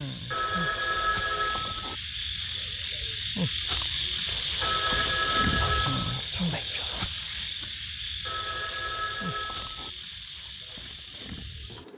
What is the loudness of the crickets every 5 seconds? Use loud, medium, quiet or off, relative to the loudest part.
loud, loud, medium.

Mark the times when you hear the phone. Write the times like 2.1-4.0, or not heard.
0.3-1.9, 4.6-6.2, 8.2-9.9.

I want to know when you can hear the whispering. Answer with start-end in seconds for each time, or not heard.
4.2-7.0.